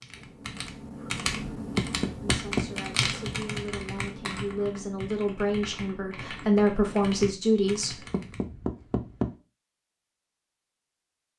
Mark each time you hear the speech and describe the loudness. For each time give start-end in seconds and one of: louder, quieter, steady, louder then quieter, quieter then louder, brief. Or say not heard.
2.2-8.0 louder.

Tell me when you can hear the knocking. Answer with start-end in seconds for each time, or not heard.
1.8-2.8, 8.1-9.3.